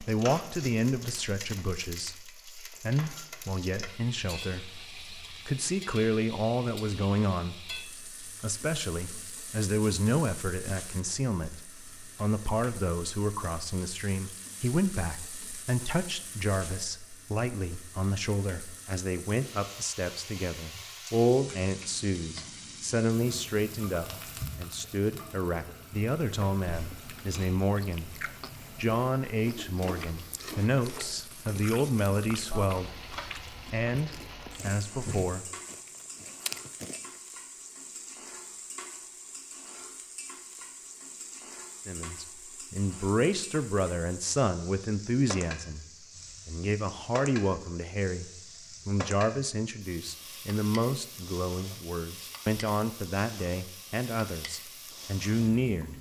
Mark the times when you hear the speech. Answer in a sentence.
The speech can be heard from 0.0 to 35.5 s and from 41.9 to 55.9 s.